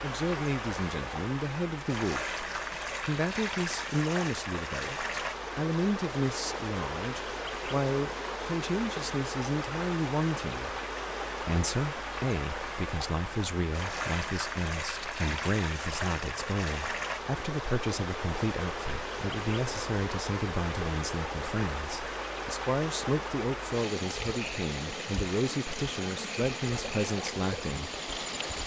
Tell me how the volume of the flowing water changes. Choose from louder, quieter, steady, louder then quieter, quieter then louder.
steady.